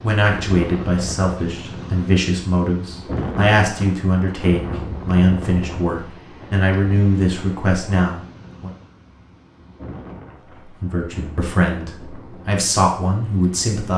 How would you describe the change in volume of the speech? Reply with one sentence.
The loudness of the speech stays about the same.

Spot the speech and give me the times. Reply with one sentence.
The speech can be heard from 0.0 to 8.7 s and from 10.6 to 13.9 s.